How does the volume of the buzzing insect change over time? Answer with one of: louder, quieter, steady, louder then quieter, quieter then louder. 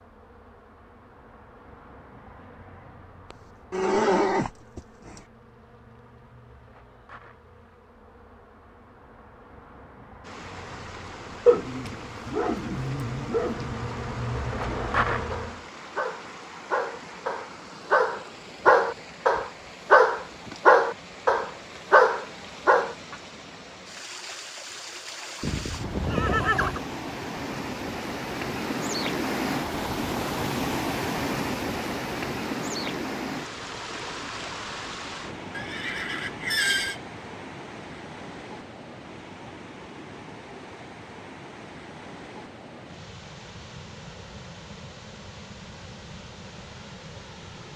louder.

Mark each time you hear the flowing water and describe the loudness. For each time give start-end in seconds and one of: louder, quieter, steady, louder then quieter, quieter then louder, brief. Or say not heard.
10.2-47.7 louder then quieter.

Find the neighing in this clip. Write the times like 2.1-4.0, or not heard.
3.3-5.2, 25.4-26.9, 35.5-37.0.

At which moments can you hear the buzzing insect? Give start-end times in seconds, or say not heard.
0.0-15.7.